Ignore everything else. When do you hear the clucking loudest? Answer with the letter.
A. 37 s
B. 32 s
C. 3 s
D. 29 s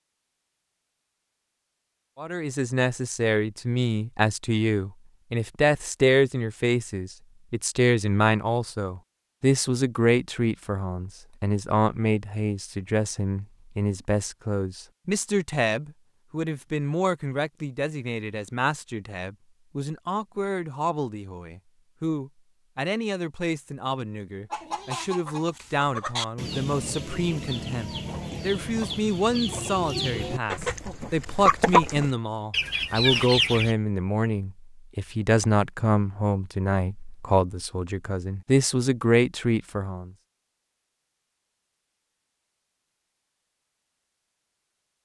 B.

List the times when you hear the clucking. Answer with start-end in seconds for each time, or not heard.
24.5-33.8.